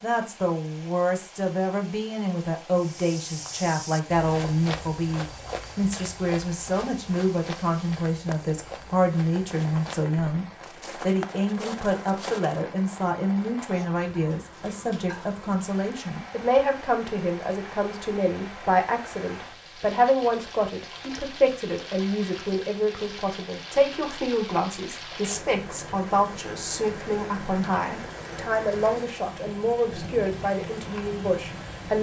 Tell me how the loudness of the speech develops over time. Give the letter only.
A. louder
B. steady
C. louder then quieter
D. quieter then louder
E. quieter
B.